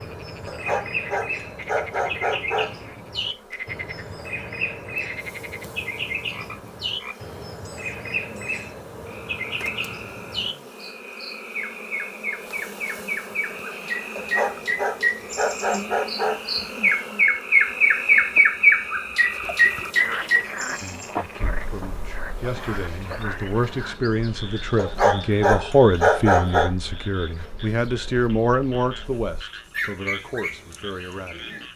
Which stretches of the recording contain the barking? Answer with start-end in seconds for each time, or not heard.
0.5-2.7, 14.2-16.6, 24.8-26.7.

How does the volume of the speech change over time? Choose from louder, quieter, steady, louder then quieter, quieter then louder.
louder then quieter.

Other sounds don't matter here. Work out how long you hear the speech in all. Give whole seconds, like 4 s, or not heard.
11 s.